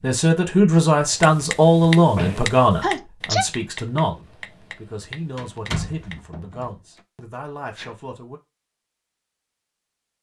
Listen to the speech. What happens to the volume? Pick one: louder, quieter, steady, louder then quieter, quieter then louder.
quieter.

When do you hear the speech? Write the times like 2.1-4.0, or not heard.
0.0-8.4.